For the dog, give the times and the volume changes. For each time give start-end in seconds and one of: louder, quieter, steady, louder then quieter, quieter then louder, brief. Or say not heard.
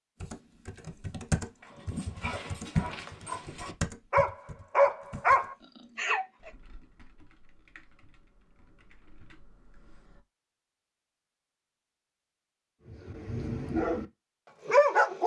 1.6-6.2 louder
12.8-14.1 brief
14.7-15.2 brief.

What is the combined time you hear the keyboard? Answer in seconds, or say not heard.
10 s.